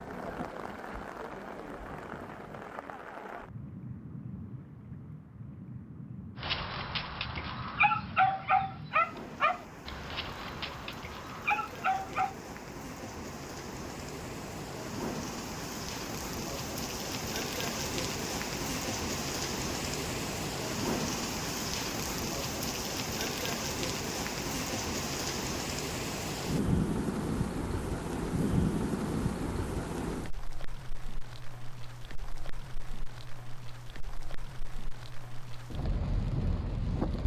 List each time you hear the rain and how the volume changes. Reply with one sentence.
The rain can be heard from 0.0 to 37.2 s, getting louder then quieter.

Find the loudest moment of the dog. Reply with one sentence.
The loudest moment of the dog is at 8 seconds.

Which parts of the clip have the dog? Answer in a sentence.
The dog can be heard from 6.4 to 12.3 s.